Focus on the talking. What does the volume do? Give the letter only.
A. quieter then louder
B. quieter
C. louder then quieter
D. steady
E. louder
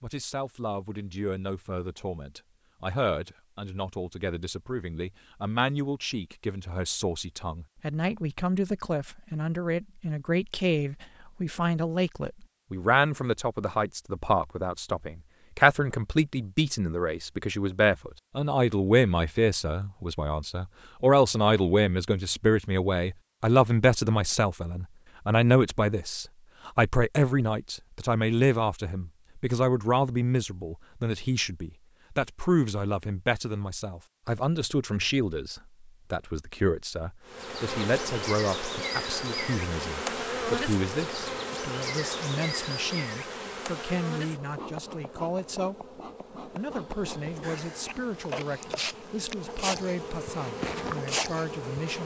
C.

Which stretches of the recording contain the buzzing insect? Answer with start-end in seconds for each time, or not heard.
37.2-52.0.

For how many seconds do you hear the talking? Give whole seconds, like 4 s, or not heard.
52 s.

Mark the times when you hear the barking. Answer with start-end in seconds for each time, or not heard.
not heard.